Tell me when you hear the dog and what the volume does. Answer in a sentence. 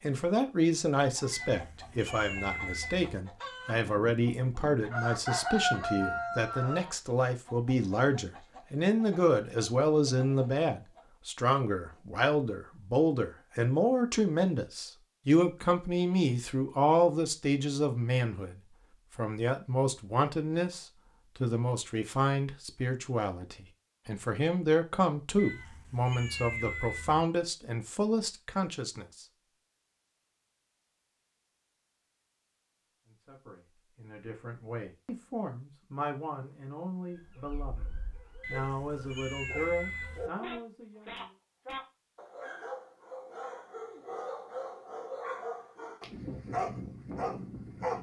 The dog can be heard from 37.1 to 47.9 s, getting louder.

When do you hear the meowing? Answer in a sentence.
The meowing can be heard from 1.3 to 3.1 s, from 25.4 to 27.2 s and from 38.4 to 40.3 s.